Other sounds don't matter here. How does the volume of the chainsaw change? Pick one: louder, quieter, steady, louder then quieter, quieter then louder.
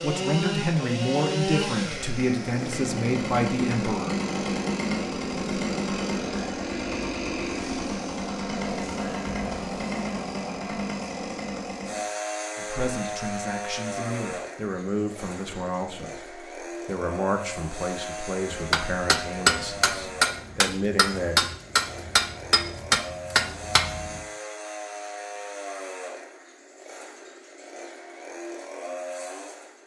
quieter.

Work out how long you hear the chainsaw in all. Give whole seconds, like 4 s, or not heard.
30 s.